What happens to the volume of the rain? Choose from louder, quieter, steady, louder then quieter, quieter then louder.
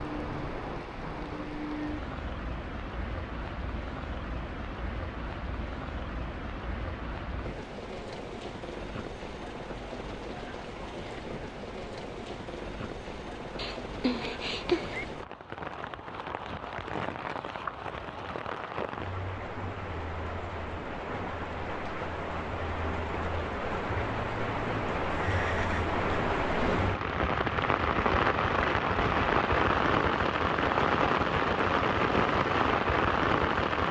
louder.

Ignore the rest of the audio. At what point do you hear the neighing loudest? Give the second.
15 s.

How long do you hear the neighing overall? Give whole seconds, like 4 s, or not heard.
2 s.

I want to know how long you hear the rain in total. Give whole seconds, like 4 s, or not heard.
34 s.